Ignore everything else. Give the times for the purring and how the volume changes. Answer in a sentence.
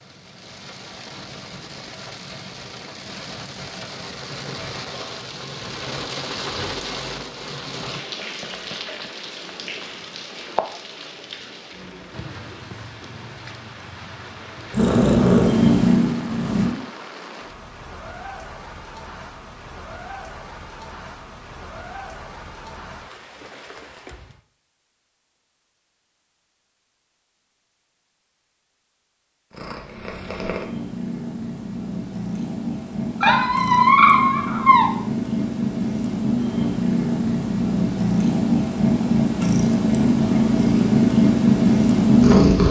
You can hear the purring briefly from 14.7 to 16.7 s; and from 29.5 to 42.6 s, getting louder.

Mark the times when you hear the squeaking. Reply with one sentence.
You can hear the squeaking from 33.2 to 34.9 s.